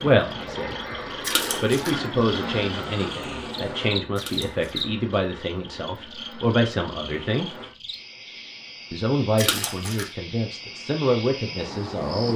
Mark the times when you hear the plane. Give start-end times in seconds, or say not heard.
0.0-7.8.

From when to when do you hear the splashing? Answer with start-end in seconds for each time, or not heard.
1.2-1.9, 4.2-4.8, 9.3-10.1.